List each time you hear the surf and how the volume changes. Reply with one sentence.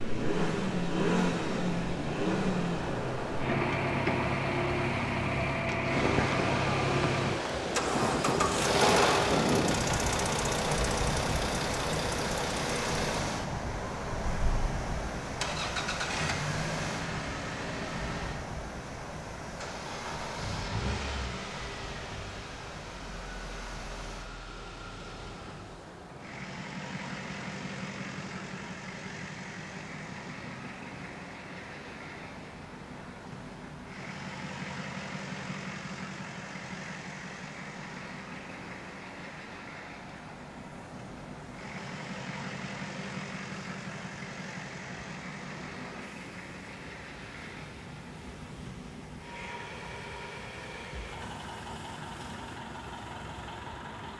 The surf can be heard from 0.0 to 54.1 s, getting quieter.